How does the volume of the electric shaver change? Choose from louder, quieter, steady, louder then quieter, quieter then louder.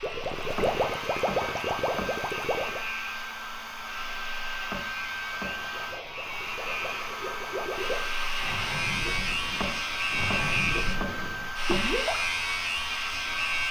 louder.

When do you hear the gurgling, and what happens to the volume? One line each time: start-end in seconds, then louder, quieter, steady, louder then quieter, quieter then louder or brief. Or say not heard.
0.0-2.8 brief
5.3-12.2 louder.